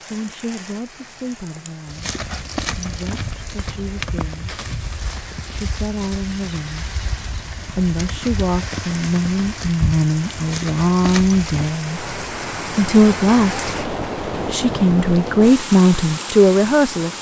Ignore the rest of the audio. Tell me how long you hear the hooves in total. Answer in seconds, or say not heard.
10 s.